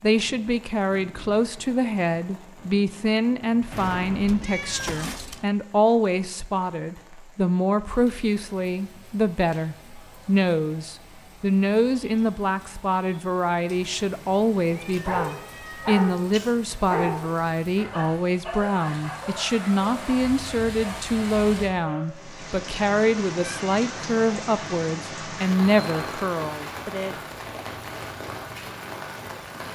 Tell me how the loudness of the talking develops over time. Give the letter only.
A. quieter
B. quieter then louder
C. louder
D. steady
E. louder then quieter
D.